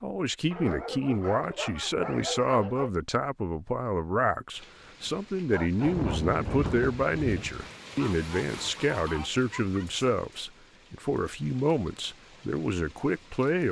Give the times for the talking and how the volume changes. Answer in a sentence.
The talking can be heard from 0.0 to 13.6 s, at a steady volume.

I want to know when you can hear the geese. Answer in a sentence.
The geese can be heard from 5.8 to 9.3 s.